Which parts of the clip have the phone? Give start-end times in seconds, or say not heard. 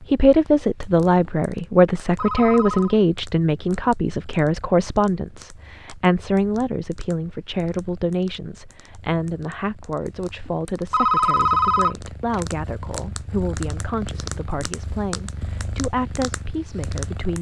2.1-3.0, 10.9-12.4.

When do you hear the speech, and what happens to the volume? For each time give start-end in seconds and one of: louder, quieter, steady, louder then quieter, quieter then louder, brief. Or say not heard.
0.1-17.3 quieter.